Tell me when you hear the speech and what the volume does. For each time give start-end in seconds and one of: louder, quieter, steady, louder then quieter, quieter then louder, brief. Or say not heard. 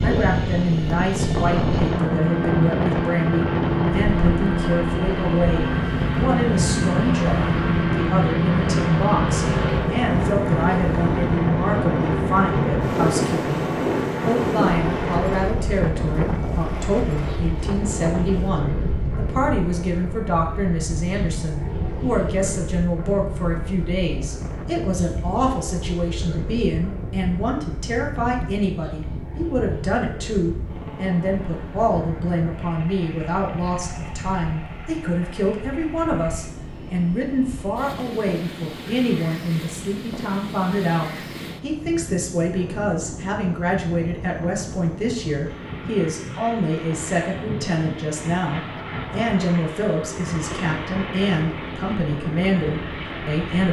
0.0-53.6 steady.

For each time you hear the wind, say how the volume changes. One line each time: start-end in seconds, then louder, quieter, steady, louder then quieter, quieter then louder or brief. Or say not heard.
0.0-53.6 quieter.